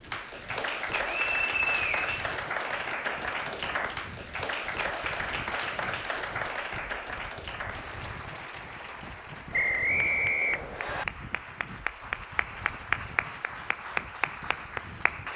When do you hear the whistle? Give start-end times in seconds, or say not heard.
0.9-2.4, 9.5-11.1.